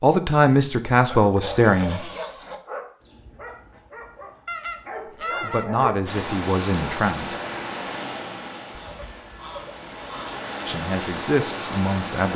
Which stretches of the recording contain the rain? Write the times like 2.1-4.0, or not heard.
6.0-12.3.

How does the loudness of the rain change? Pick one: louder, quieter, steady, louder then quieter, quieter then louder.
quieter then louder.